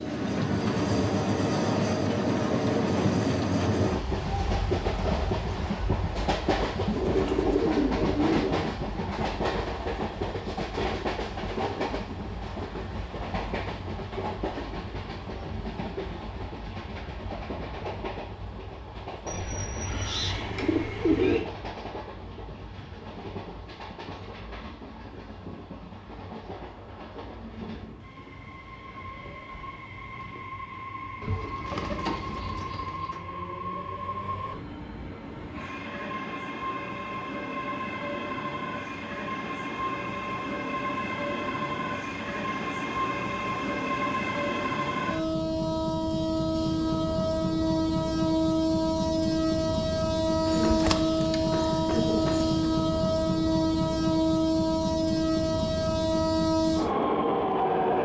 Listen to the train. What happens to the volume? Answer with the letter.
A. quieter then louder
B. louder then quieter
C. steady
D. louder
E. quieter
A.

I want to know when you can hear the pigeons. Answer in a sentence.
The pigeons can be heard from 7.0 to 8.6 s, from 19.2 to 21.4 s, from 31.2 to 33.2 s and from 50.5 to 52.5 s.